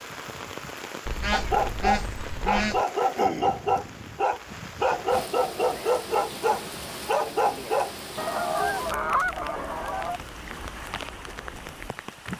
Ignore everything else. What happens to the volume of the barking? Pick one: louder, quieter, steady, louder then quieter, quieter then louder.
steady.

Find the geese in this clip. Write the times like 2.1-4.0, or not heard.
1.1-2.9, 8.2-10.2.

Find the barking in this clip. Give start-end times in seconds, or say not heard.
1.3-8.0.